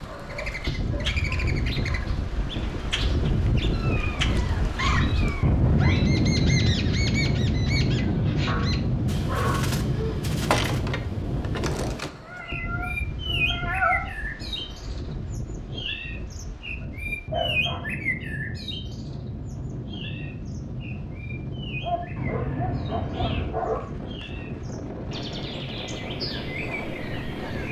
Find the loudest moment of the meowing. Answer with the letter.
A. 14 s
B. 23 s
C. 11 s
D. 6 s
A.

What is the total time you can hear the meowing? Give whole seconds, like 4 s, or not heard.
6 s.